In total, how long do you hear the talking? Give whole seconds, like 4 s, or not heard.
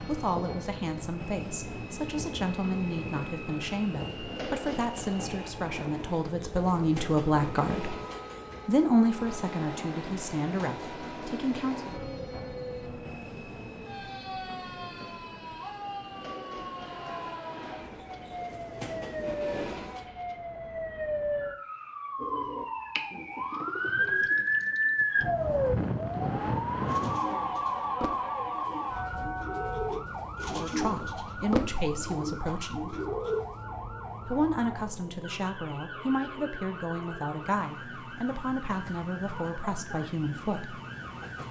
20 s.